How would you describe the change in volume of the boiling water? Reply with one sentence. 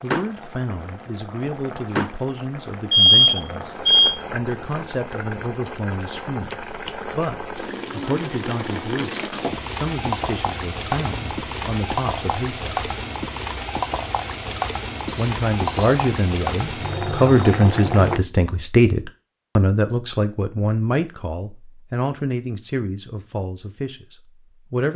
The volume of the boiling water goes up.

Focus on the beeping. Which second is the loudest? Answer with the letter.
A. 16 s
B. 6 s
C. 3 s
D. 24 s
C.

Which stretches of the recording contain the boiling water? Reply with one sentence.
The boiling water can be heard from 0.0 to 18.2 s.